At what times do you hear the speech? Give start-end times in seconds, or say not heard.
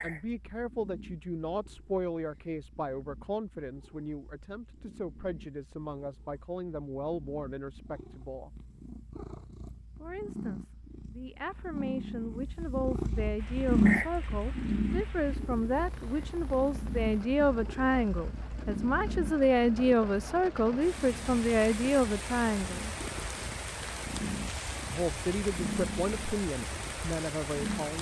0.0-8.5, 10.0-22.9, 24.9-27.9.